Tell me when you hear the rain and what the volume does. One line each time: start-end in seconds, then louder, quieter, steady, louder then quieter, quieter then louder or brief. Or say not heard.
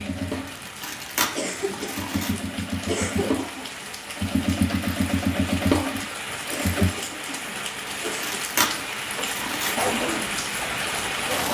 0.0-11.5 louder.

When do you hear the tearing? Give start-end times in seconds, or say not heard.
0.5-2.4, 8.1-9.8.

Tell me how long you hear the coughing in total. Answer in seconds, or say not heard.
4 s.